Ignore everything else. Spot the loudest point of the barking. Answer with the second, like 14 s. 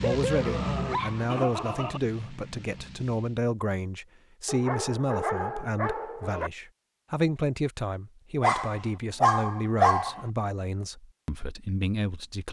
10 s.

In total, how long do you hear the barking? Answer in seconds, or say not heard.
6 s.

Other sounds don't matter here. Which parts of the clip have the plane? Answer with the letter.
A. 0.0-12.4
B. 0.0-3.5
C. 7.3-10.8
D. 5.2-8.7
B.